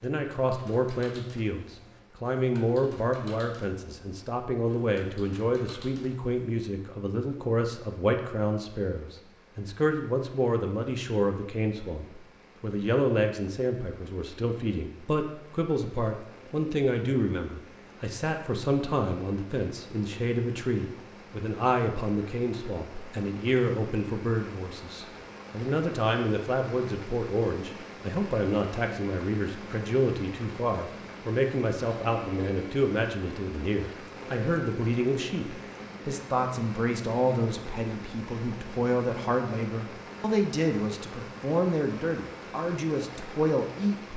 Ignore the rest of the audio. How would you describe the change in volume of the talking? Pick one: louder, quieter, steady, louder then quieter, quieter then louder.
steady.